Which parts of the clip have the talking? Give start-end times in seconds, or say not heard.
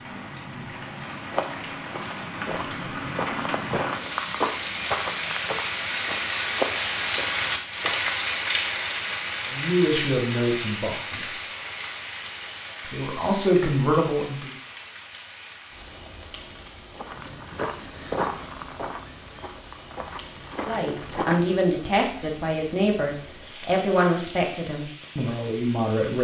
9.4-11.3, 12.8-14.5, 20.6-26.1.